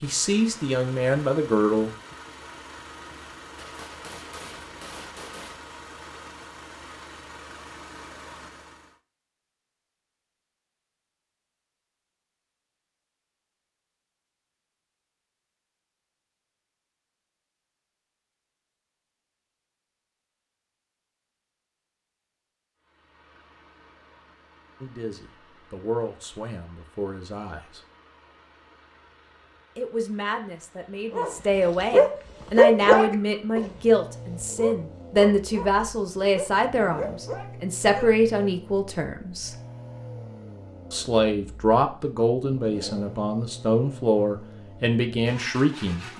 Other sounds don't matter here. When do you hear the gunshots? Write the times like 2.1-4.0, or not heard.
3.5-5.6.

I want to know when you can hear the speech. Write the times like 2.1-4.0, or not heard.
0.0-1.9, 24.8-27.8, 29.8-39.5, 40.9-46.1.